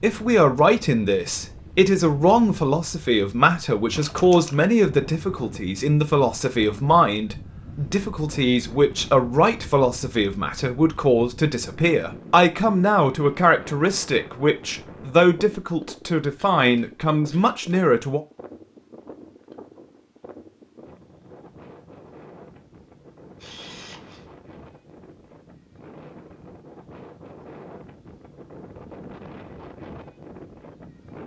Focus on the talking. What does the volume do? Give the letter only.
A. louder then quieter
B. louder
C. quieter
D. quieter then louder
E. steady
E.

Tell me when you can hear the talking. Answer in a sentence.
You can hear the talking from 0.0 to 18.2 s.